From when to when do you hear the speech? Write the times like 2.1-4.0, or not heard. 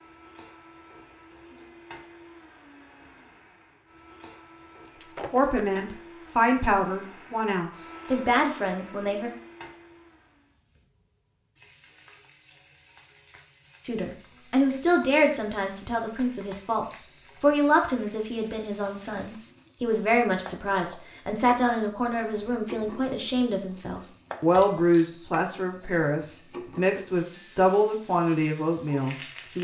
5.3-9.3, 13.8-29.6.